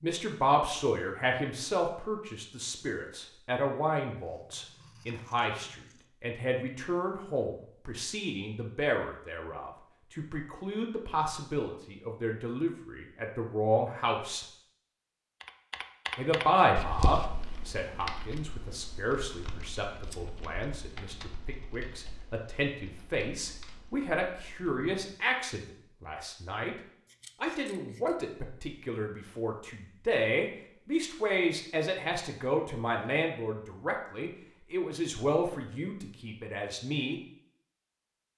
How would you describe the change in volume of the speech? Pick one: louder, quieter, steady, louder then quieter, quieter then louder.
steady.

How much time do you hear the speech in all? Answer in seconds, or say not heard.
35 s.